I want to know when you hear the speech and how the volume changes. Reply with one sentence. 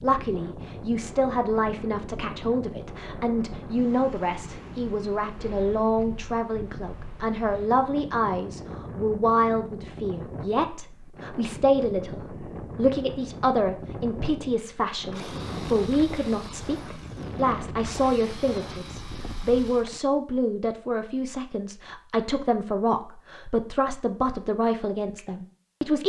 The speech can be heard from 0.0 to 26.0 s, at a steady volume.